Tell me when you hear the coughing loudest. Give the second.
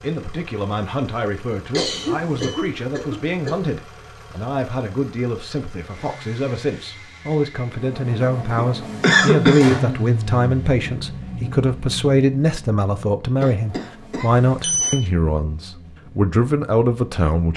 9 s.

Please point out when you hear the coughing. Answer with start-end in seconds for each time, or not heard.
1.7-3.6, 8.6-9.8, 13.4-14.3.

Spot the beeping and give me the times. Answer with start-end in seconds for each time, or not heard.
1.9-2.6, 14.3-14.9.